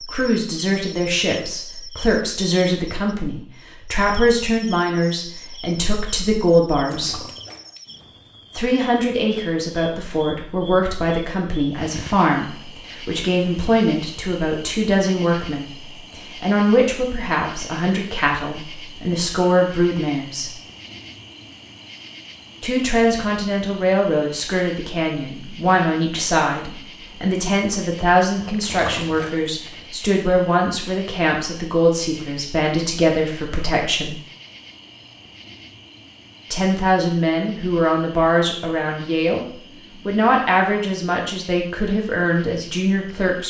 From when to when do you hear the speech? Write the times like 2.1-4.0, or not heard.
0.0-7.2, 8.6-20.5, 22.6-34.1, 36.5-39.5, 40.0-43.4.